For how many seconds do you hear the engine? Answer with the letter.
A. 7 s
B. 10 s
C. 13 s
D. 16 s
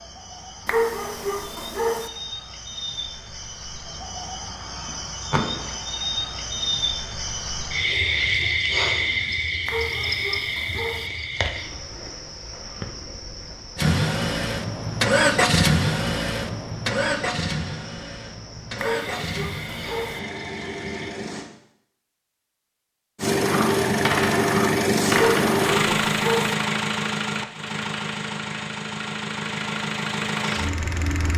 D.